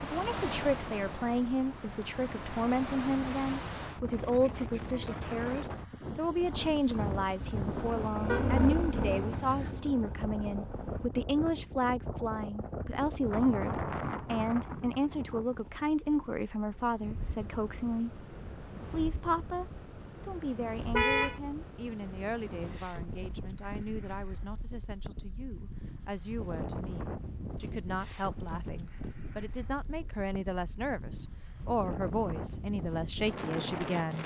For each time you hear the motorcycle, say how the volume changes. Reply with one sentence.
The motorcycle can be heard from 6.3 to 11.1 s, getting louder then quieter.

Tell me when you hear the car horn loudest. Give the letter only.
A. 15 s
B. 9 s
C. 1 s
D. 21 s
D.